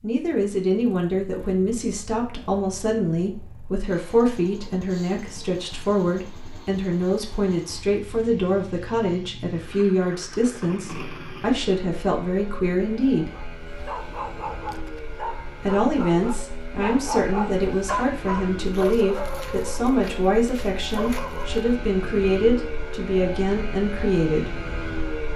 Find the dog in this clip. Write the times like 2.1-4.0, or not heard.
13.2-21.6.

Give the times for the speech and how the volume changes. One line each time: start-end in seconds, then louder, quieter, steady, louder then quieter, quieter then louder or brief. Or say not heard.
0.0-13.4 steady
15.6-24.5 steady.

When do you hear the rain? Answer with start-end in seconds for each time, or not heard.
not heard.